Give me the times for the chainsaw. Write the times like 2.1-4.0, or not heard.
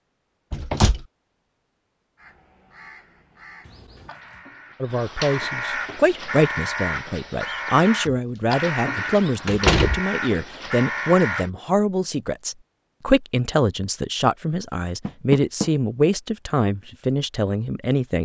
not heard.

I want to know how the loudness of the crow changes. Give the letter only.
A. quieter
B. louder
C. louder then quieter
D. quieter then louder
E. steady
B.